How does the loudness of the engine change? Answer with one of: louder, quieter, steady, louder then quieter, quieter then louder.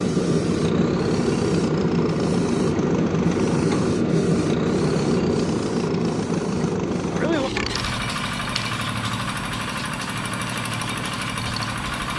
steady.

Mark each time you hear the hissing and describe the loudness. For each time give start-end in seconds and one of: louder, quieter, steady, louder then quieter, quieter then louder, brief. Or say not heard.
0.0-11.9 quieter.